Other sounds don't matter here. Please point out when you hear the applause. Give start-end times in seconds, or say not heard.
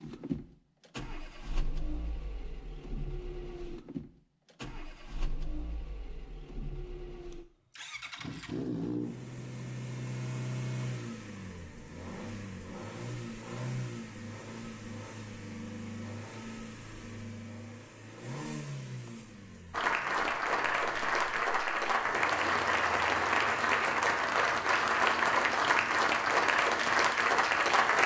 19.7-28.0.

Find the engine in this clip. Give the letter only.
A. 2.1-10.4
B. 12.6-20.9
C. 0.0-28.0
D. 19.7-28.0
C.